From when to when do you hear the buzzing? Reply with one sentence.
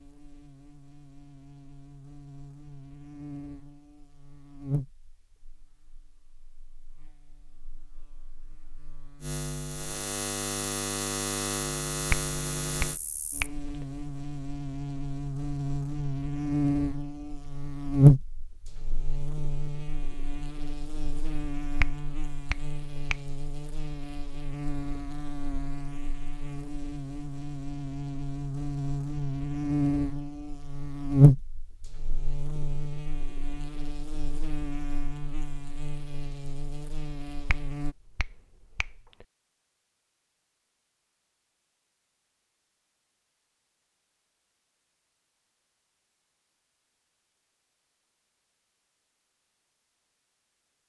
The buzzing can be heard from 0.0 to 38.0 s.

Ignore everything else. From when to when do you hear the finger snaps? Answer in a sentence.
You can hear the finger snaps from 12.1 to 13.6 s, from 21.8 to 23.2 s and from 37.5 to 39.0 s.